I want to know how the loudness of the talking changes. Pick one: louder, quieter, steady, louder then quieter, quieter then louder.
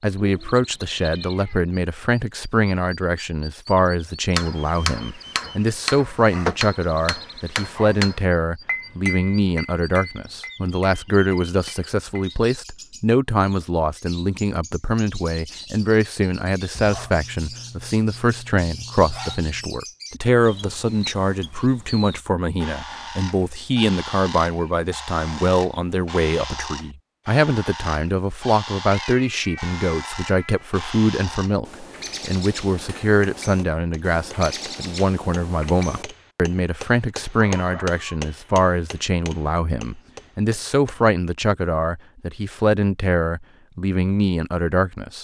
steady.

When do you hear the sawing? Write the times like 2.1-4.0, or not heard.
not heard.